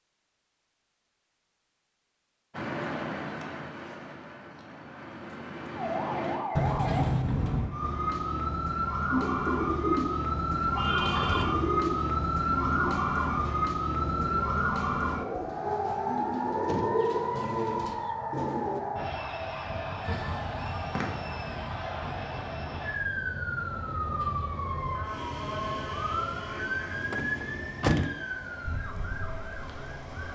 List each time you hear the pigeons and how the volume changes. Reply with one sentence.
The pigeons can be heard from 9.1 to 18.8 s, getting quieter then louder.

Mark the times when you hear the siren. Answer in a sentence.
The siren can be heard from 5.8 to 30.3 s.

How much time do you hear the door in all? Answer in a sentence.
The door can be heard for 3 seconds in total.